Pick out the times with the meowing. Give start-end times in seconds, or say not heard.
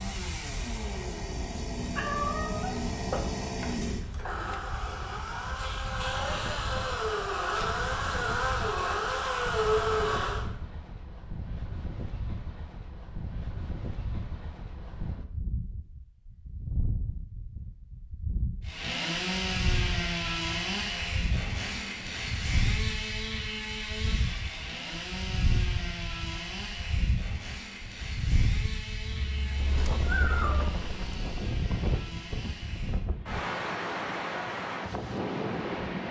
1.9-3.7, 29.0-30.8.